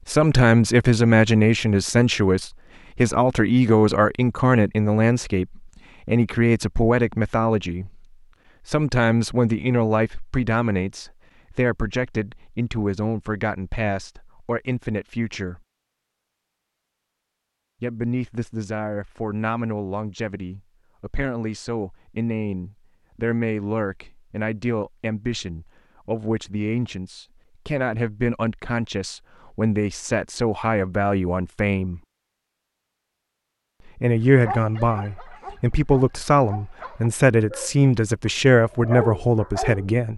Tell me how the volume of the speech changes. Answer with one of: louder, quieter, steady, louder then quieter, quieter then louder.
quieter then louder.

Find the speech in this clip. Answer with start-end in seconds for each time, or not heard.
0.1-8.0, 8.7-15.6, 17.8-32.0, 33.9-40.1.